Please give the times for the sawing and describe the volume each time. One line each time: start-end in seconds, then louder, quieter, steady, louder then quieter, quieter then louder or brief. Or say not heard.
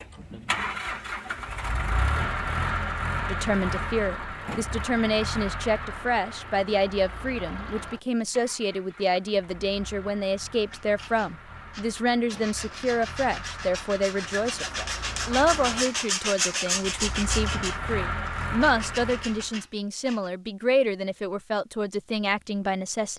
10.7-20.3 louder then quieter.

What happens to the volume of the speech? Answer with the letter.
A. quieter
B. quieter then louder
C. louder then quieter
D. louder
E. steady
E.